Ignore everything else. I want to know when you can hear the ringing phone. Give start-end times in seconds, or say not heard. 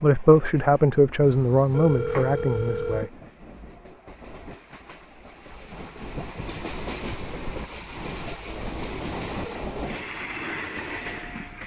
1.2-3.1, 8.9-9.3.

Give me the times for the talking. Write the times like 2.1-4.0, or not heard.
0.0-3.1.